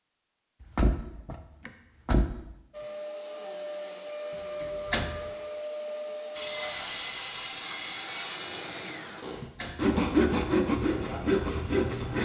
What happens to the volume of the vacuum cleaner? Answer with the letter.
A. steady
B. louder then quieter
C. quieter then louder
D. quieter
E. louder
A.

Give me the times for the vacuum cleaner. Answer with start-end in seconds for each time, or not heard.
2.7-6.8.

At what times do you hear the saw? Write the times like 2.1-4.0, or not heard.
6.3-12.2.